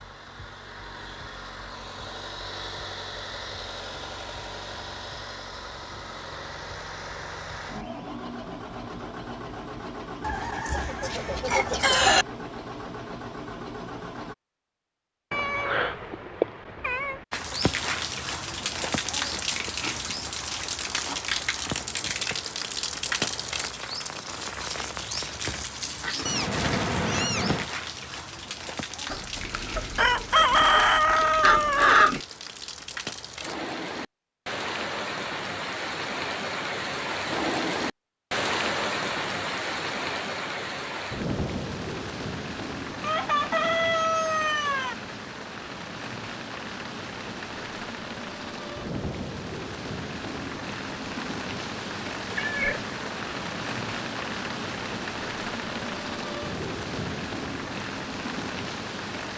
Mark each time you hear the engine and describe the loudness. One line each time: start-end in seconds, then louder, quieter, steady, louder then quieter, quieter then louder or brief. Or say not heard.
0.0-14.3 steady.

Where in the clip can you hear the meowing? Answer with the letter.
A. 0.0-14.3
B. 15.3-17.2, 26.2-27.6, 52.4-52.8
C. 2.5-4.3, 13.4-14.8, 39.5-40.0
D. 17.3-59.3
B.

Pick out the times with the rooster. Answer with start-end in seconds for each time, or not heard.
10.2-12.2, 29.1-32.2, 43.0-45.0.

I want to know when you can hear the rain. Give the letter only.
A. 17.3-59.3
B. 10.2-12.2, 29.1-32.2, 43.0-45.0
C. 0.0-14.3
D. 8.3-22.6
A.